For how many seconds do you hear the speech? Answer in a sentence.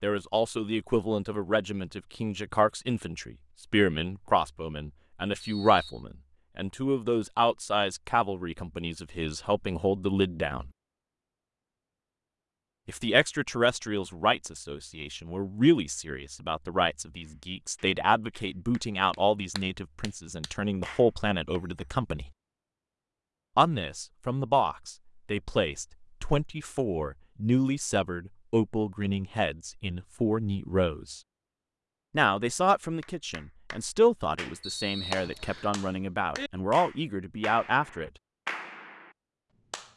You can hear the speech for 34 seconds altogether.